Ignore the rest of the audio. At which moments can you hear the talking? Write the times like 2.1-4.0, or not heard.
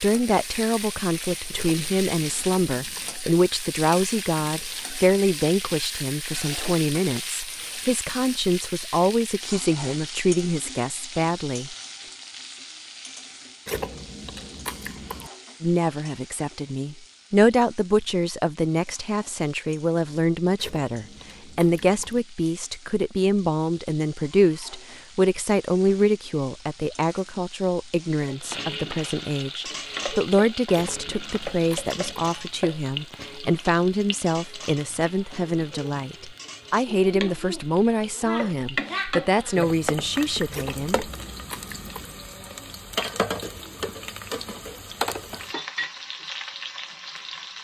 0.0-11.8, 15.6-41.1.